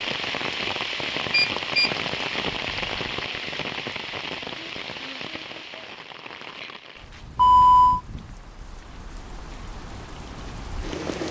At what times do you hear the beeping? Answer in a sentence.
The beeping can be heard from 1.3 to 1.9 s and from 7.3 to 8.0 s.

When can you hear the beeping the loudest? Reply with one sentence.
The volume of the beeping peaks at 8 seconds.